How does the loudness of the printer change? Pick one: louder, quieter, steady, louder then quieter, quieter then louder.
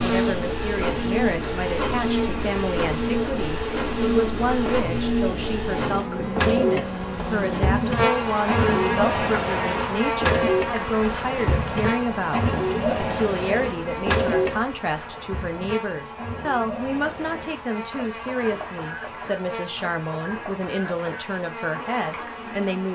quieter.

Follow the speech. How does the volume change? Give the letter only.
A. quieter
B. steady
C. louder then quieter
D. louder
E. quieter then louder
B.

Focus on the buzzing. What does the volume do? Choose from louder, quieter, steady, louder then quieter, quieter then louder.
louder then quieter.